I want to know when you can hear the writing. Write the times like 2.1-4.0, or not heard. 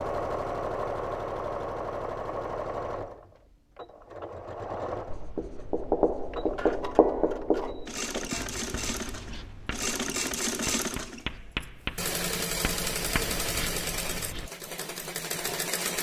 5.0-14.5.